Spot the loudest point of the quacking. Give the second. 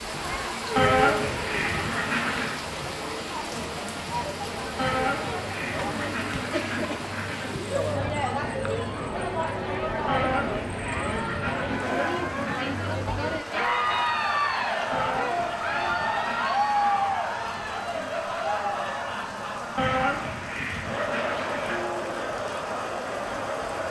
1 s.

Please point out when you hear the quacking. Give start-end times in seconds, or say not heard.
0.8-2.5, 4.8-7.5, 10.1-12.7, 14.9-17.1, 19.8-21.9.